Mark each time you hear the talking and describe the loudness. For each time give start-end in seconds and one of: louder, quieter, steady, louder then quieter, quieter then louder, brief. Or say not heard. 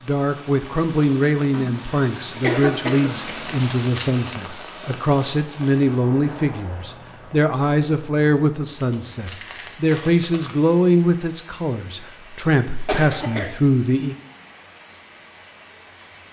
0.1-14.2 steady.